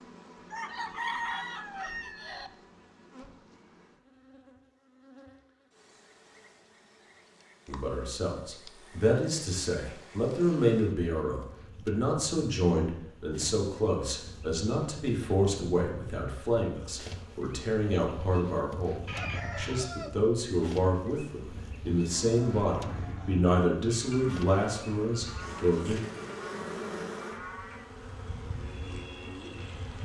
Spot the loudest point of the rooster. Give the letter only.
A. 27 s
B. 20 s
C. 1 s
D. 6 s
C.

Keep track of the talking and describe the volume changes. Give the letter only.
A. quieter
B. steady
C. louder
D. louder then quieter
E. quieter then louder
B.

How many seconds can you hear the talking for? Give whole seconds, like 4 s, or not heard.
18 s.